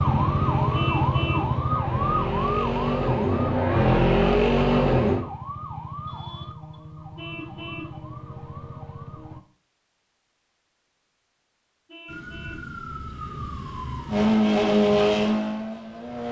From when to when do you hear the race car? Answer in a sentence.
The race car can be heard from 0.0 to 5.2 s and from 14.1 to 16.2 s.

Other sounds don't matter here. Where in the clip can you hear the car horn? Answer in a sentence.
The car horn can be heard from 0.7 to 1.6 s, from 7.2 to 8.0 s and from 11.8 to 12.6 s.